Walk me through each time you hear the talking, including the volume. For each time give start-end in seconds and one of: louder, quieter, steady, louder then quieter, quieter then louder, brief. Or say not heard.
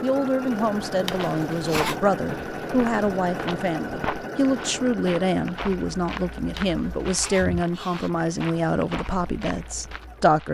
0.0-10.4 steady.